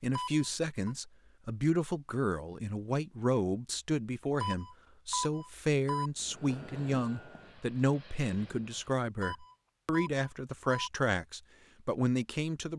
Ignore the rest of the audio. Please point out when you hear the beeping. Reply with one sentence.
The beeping can be heard from 0.1 to 0.9 s, from 4.4 to 6.1 s and from 9.2 to 10.9 s.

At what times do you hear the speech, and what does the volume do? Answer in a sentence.
The speech can be heard from 0.0 to 12.7 s, at a steady volume.